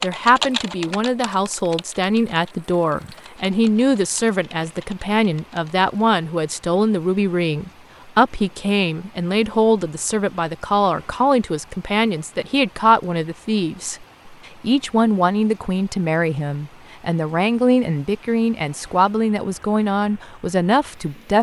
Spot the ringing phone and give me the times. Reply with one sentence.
You can't hear the ringing phone here.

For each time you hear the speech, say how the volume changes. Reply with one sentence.
The speech can be heard from 0.0 to 21.3 s, at a steady volume.